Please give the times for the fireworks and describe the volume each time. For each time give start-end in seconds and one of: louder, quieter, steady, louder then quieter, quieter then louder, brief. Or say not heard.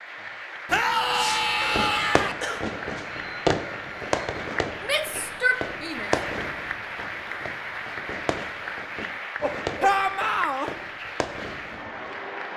1.1-12.2 quieter.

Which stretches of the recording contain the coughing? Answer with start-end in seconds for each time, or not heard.
1.6-2.6, 9.4-10.8.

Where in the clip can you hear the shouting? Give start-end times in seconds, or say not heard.
0.7-2.4, 4.8-6.1, 9.8-10.7.